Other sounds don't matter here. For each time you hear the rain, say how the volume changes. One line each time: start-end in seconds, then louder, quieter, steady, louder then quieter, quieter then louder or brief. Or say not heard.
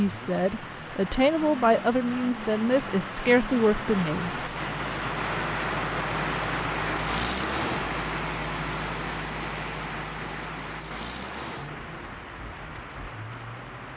0.0-13.9 louder then quieter.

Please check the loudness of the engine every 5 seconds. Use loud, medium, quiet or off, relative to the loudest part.
medium, loud, medium.